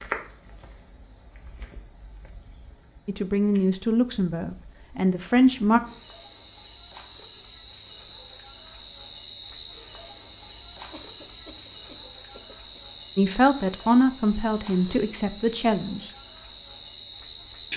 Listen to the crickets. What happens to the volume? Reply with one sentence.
The volume of the crickets goes up.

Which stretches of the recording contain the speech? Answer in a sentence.
You can hear the speech from 3.0 to 5.8 s and from 13.2 to 16.1 s.